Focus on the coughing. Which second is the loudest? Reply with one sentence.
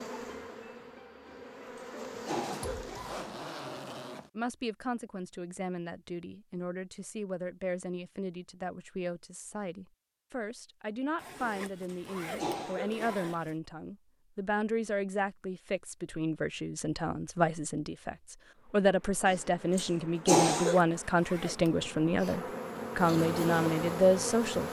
The volume of the coughing peaks at 20 seconds.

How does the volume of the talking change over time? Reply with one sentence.
The loudness of the talking goes up.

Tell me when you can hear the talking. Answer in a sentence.
The talking can be heard from 4.3 to 24.6 s.